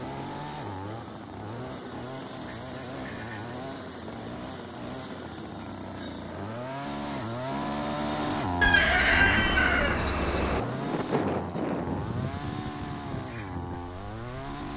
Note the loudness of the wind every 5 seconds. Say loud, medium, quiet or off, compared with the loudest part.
medium, medium, loud.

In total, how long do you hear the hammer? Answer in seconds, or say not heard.
not heard.